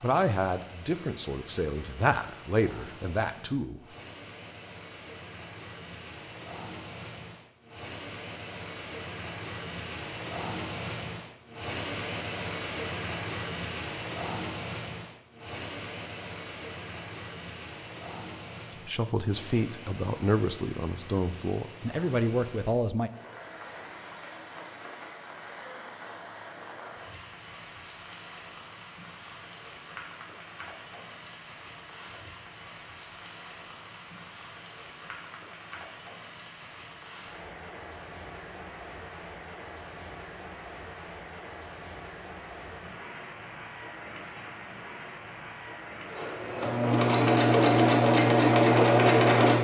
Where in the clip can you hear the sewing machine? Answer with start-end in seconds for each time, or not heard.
46.1-49.5.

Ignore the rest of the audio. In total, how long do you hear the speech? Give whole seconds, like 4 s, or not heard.
8 s.